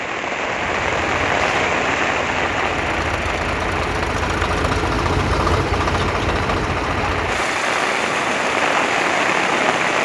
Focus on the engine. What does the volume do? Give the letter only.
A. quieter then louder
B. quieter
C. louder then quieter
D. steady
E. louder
C.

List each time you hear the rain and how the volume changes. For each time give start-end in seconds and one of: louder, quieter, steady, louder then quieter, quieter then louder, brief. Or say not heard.
0.0-10.0 quieter then louder.